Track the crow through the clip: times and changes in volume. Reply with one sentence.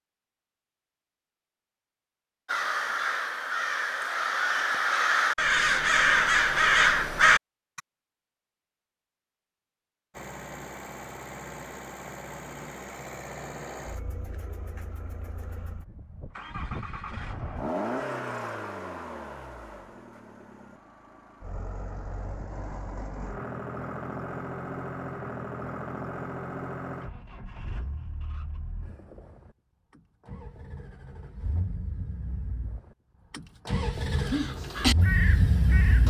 You can hear the crow from 2.5 to 7.8 s, getting louder; and briefly from 34.1 to 36.0 s.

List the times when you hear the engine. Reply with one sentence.
You can hear the engine from 10.1 to 36.0 s.